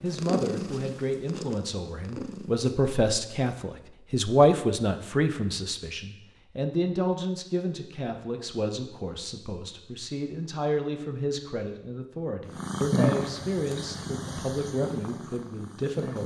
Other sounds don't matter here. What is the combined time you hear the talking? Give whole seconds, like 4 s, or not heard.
16 s.